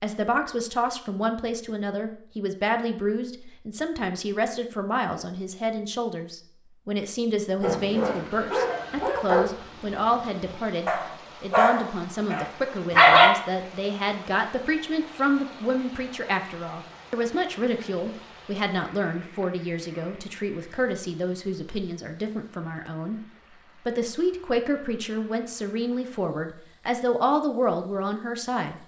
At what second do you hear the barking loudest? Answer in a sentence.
The volume of the barking peaks at 13 seconds.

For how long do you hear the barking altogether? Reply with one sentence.
You can hear the barking for 6 seconds altogether.